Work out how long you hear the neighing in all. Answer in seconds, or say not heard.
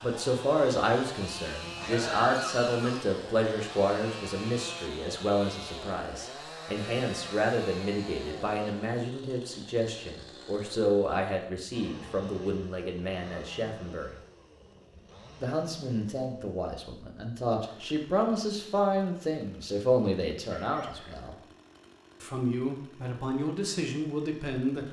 2 s.